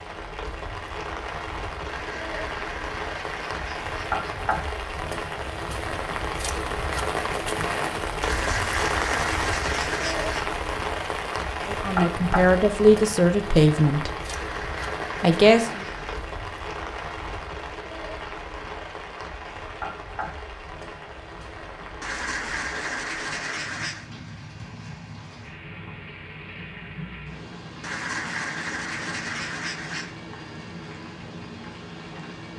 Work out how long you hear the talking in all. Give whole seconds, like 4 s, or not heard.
3 s.